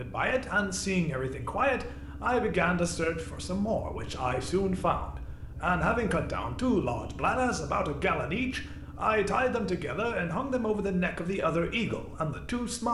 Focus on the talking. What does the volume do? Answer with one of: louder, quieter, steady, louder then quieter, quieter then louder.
steady.